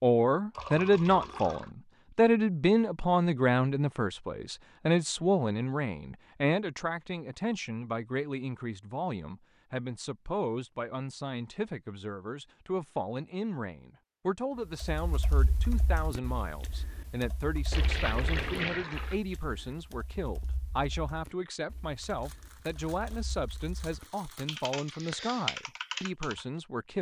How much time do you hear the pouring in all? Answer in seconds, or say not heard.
3 s.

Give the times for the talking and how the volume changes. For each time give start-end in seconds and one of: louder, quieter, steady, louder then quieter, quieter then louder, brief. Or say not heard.
0.0-26.9 quieter.